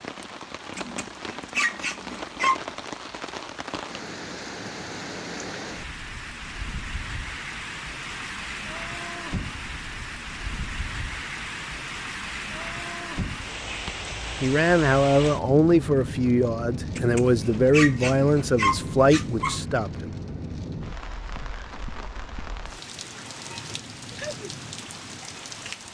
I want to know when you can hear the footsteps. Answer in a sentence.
You can't hear the footsteps here.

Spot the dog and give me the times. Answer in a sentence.
You can hear the dog from 0.8 to 2.6 s and from 16.9 to 19.6 s.